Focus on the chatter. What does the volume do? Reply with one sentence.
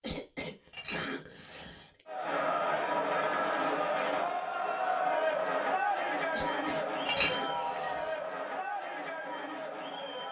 The volume of the chatter goes down.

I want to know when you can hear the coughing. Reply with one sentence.
You can hear the coughing from 0.0 to 2.0 s and from 6.3 to 8.3 s.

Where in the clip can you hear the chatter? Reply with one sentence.
The chatter can be heard from 2.0 to 10.2 s.